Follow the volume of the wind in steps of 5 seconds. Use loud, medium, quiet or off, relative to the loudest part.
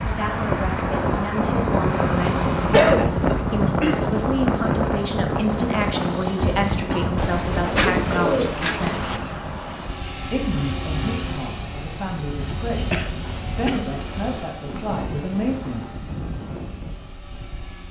loud, medium, quiet, quiet.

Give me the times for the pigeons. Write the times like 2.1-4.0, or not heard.
7.2-9.2.